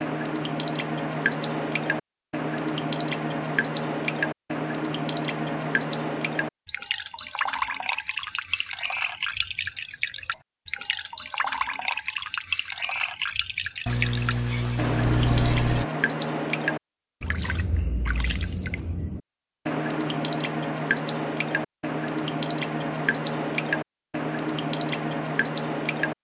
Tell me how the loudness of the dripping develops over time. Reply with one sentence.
The volume of the dripping stays about the same.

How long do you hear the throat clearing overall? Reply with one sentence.
The throat clearing can be heard for 2 seconds in total.